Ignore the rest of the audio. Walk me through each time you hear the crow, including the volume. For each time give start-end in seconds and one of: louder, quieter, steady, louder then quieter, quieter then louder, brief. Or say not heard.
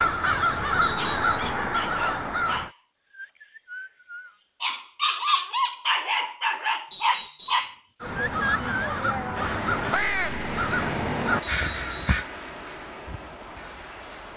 0.0-2.7 brief
8.0-14.1 quieter.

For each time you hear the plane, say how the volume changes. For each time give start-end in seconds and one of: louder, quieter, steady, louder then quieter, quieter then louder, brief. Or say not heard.
9.3-14.3 quieter.